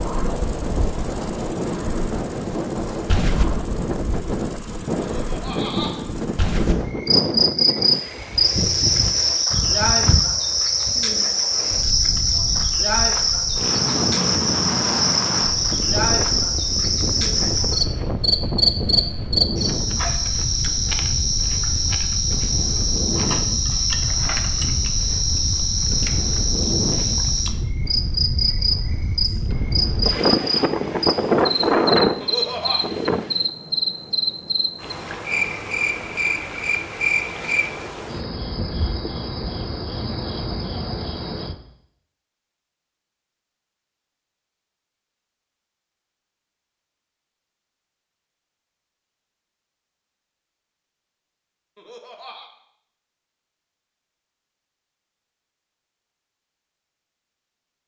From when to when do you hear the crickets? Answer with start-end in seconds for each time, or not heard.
0.0-41.5.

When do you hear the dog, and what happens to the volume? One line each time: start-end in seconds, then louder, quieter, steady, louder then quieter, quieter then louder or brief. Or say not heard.
not heard.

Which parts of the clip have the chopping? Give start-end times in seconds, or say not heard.
not heard.